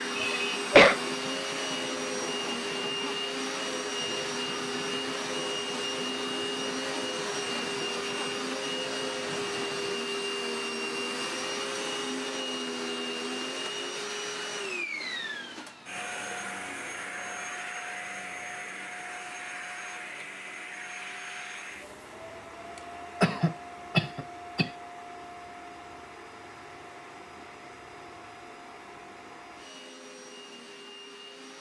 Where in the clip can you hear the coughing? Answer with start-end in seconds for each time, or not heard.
0.1-0.9, 22.8-24.7.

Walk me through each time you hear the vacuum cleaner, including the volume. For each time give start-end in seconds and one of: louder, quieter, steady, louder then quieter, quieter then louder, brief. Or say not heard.
0.0-31.5 quieter.